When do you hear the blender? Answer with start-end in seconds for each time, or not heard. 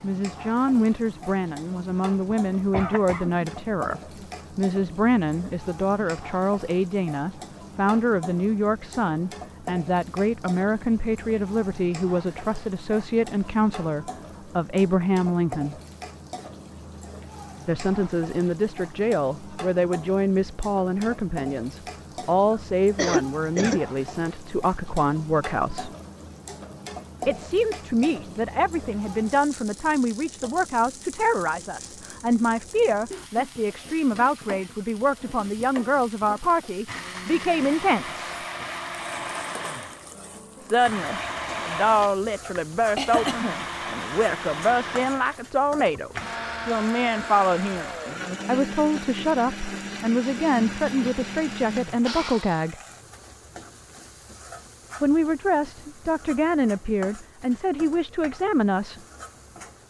36.9-52.6.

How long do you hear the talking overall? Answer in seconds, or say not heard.
51 s.